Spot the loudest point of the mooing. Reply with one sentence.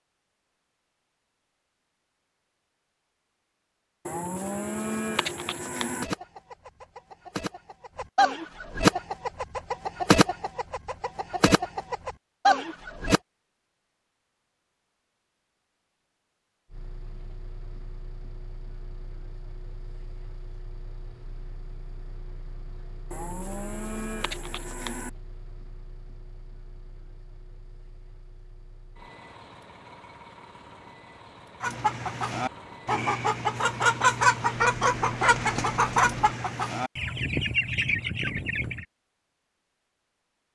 The volume of the mooing peaks at 5 seconds.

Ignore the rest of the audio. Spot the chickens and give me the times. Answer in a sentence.
The chickens can be heard from 6.0 to 13.2 s and from 31.6 to 38.9 s.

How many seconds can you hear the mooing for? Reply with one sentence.
The mooing can be heard for 4 seconds in total.